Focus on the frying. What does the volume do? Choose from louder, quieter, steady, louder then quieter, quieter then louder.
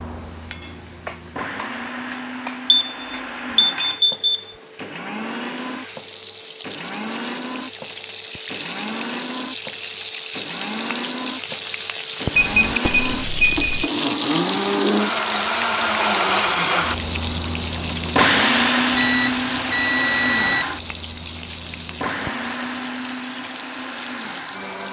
louder then quieter.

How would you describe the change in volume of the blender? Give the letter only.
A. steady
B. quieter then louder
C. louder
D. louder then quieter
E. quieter
D.